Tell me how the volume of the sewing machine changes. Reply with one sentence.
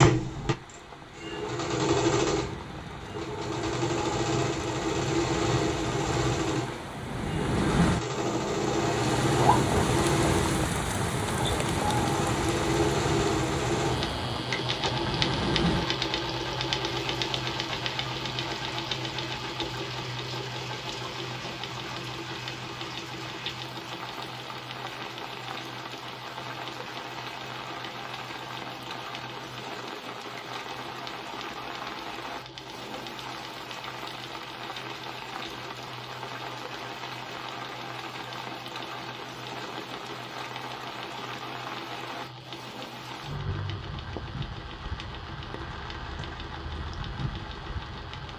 The loudness of the sewing machine goes down.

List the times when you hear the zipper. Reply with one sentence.
You can hear the zipper from 8.2 to 9.9 s.